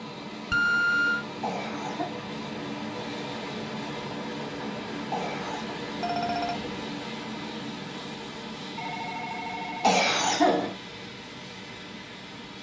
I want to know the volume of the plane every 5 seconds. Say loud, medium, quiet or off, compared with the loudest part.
loud, loud, medium.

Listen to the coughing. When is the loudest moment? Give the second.
10 s.